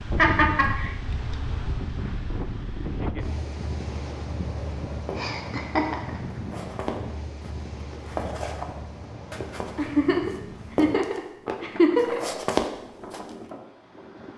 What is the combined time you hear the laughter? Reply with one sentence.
You can hear the laughter for 4 seconds altogether.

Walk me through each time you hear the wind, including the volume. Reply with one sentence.
You can hear the wind from 0.0 to 14.3 s, getting quieter.